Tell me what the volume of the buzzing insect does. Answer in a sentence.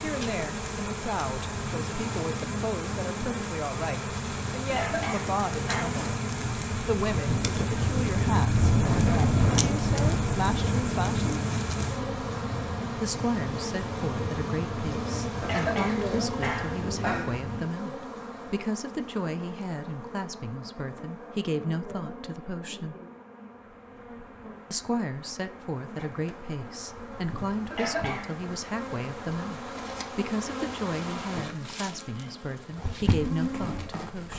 The loudness of the buzzing insect goes down, then up.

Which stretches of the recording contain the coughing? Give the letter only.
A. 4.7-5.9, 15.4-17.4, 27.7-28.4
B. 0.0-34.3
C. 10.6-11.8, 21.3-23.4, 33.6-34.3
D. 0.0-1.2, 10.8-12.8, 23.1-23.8
A.